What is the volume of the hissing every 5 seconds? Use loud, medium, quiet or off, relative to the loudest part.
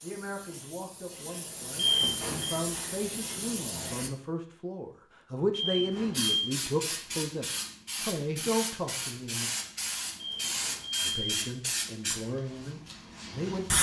medium, loud, loud.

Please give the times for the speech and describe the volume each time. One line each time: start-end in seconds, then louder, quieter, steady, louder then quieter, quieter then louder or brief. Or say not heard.
0.0-9.5 louder
11.0-13.7 brief.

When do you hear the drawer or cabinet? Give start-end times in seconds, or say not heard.
not heard.